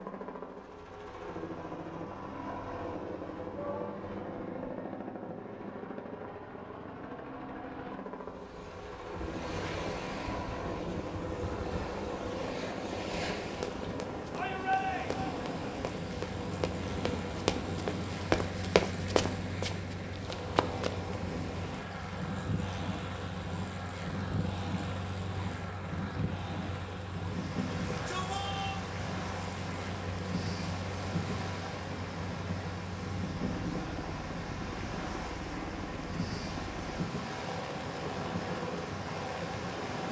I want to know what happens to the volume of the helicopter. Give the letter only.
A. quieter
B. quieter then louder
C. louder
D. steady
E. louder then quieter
D.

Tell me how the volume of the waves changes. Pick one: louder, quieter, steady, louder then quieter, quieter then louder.
steady.